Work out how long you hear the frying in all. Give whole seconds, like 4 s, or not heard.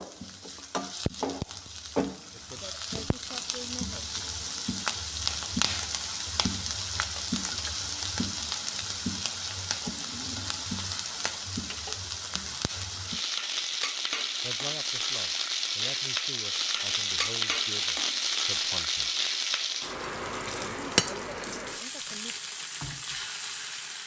24 s.